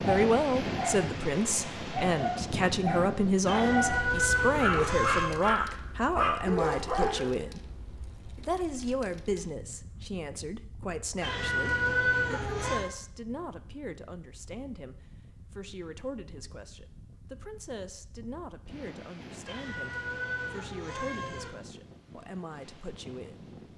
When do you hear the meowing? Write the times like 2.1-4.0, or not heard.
3.5-5.3, 11.2-12.8, 19.4-21.5.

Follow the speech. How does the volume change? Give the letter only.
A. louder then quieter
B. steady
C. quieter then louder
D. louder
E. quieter
E.